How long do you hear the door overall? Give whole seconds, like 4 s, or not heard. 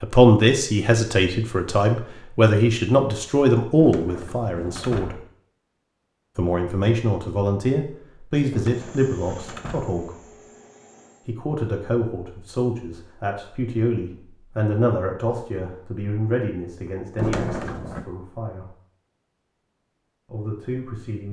4 s.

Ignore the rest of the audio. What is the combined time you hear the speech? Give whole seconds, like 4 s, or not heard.
17 s.